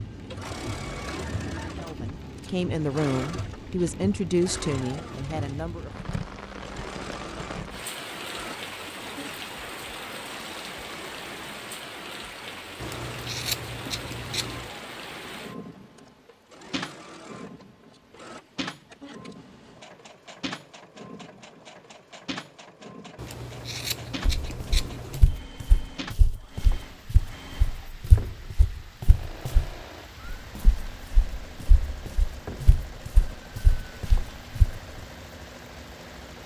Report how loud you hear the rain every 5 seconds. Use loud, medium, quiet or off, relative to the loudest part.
loud, loud, loud, loud, loud, medium, medium, medium.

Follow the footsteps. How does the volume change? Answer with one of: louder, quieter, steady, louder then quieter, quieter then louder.
steady.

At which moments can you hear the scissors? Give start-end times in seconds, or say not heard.
12.8-14.7, 23.1-25.2.